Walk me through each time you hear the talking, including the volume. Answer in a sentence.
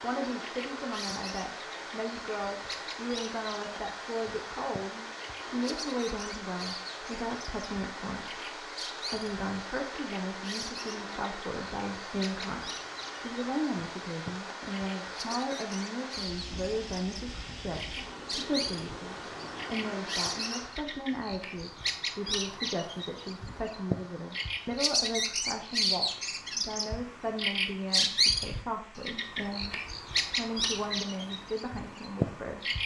You can hear the talking from 0.0 to 32.8 s, at a steady volume.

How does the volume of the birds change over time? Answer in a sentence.
The volume of the birds goes up.